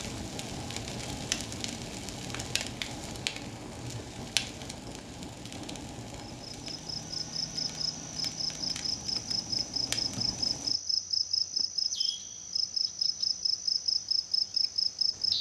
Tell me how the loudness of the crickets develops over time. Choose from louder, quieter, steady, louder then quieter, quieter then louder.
louder.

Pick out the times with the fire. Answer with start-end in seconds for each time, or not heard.
0.0-10.8.